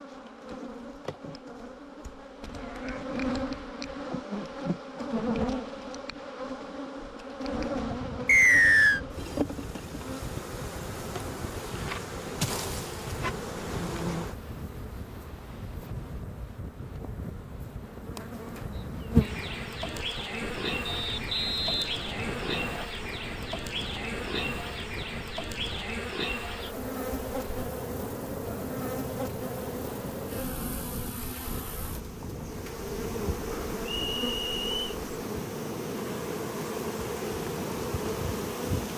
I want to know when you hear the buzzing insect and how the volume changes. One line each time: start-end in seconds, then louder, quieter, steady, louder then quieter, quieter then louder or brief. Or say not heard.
0.0-38.9 steady.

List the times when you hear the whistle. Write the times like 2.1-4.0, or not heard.
8.2-9.0, 20.9-22.9, 33.9-34.9.